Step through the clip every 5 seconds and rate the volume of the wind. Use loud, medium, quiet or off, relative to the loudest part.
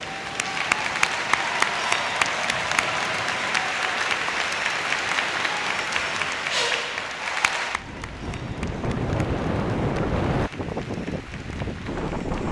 quiet, loud, loud.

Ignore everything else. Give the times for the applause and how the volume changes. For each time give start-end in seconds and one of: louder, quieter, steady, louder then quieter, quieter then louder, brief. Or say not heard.
0.0-12.4 quieter.